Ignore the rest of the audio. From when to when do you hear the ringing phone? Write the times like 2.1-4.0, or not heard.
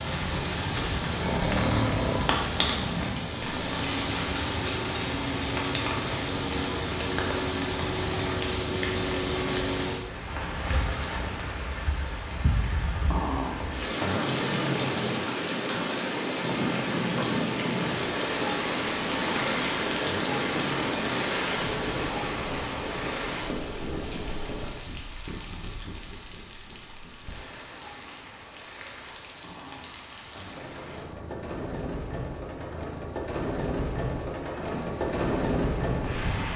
not heard.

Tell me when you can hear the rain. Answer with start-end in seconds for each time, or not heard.
0.0-36.5.